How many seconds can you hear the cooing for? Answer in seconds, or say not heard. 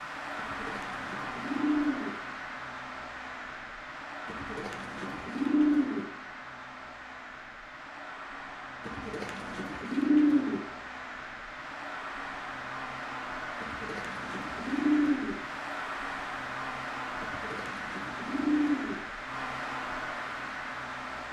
9 s.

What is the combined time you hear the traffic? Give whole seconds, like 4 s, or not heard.
21 s.